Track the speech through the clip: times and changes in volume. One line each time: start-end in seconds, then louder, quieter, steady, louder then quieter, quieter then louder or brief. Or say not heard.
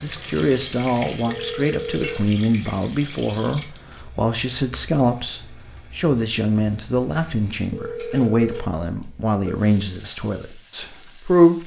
0.0-11.6 steady.